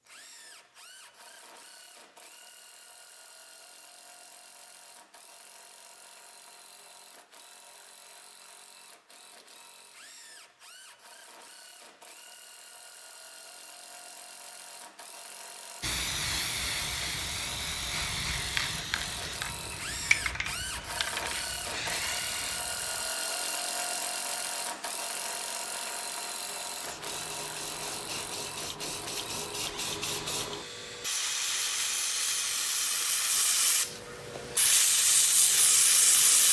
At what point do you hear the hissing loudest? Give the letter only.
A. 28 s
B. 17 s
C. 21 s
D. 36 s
D.